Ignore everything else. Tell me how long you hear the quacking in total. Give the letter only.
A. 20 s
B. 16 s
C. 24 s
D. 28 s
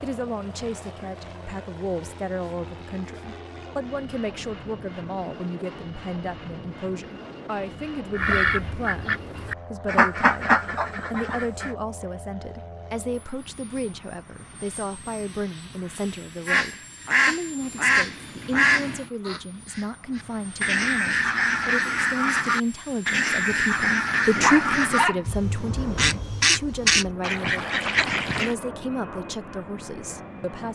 B.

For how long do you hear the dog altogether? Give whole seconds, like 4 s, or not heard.
2 s.